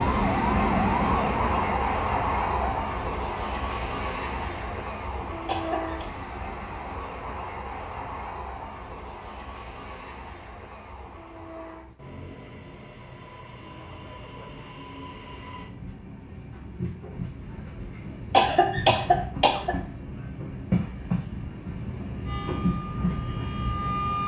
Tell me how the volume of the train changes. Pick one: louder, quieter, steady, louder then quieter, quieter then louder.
quieter then louder.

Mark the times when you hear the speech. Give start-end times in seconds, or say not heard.
not heard.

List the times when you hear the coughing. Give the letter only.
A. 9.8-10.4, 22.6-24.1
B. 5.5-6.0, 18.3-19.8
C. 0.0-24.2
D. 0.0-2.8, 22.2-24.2
B.